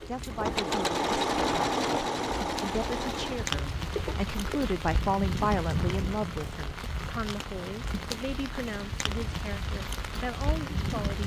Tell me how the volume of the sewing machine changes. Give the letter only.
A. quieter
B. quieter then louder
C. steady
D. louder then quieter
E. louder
A.